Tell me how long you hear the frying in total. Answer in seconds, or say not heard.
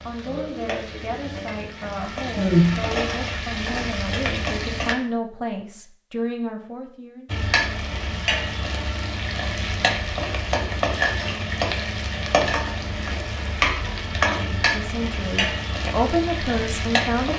15 s.